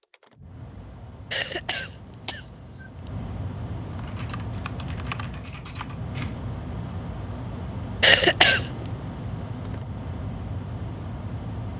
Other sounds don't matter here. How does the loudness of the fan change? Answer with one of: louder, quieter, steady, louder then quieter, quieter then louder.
louder.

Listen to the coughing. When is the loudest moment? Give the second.
8 s.